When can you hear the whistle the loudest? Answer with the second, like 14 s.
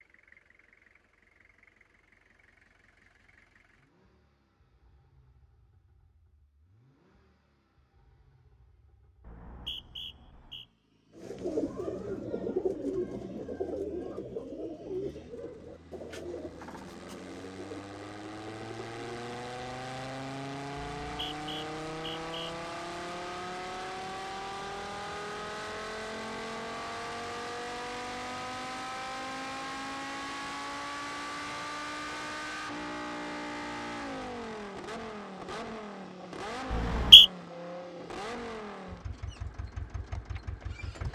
37 s.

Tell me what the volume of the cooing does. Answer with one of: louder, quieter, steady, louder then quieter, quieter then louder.
quieter.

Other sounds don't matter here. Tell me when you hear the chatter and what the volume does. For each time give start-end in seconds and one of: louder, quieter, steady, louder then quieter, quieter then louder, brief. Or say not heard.
not heard.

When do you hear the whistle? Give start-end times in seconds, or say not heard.
9.2-10.7, 20.9-22.4, 36.7-37.2.